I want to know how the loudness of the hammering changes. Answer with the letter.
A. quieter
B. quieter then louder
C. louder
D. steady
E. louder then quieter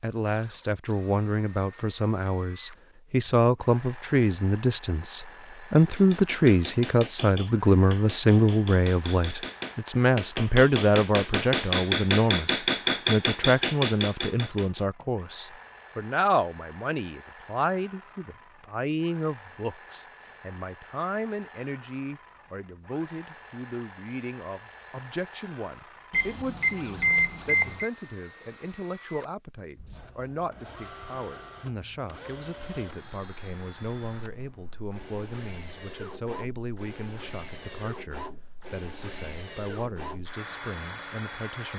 C.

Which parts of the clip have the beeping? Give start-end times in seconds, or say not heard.
26.1-27.9.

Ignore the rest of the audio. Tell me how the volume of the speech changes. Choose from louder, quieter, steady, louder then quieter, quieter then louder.
quieter.